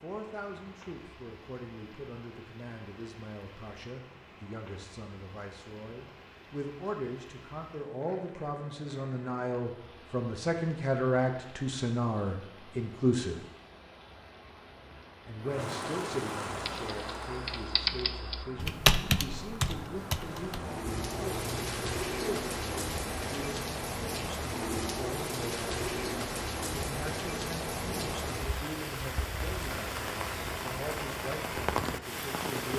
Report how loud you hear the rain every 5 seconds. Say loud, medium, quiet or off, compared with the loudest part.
quiet, quiet, quiet, medium, loud, loud, loud.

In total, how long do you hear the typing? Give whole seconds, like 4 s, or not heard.
5 s.